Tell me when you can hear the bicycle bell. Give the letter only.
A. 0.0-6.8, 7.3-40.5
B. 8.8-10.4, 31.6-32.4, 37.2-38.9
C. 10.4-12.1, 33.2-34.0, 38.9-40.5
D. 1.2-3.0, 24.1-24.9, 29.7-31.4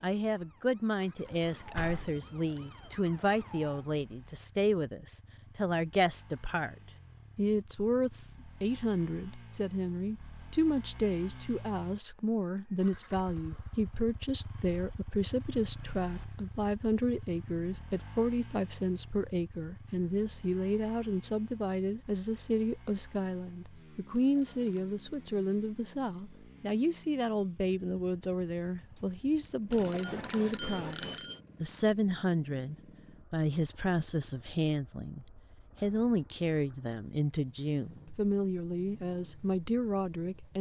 D.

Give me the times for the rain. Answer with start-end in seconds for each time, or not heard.
not heard.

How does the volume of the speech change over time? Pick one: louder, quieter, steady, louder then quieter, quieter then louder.
steady.